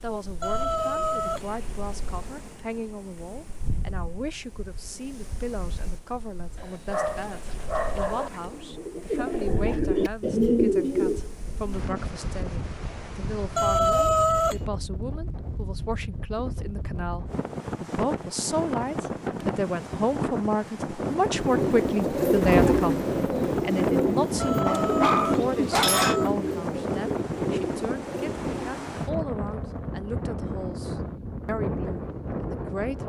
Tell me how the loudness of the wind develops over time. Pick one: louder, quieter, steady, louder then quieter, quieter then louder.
louder.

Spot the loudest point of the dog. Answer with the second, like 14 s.
26 s.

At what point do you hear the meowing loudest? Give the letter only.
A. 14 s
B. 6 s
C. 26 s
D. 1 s
A.